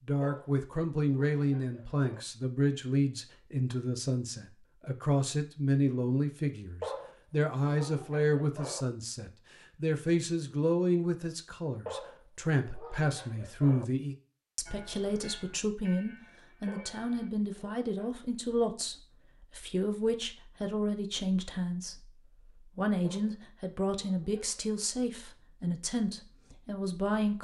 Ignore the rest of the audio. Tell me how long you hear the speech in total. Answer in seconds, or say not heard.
27 s.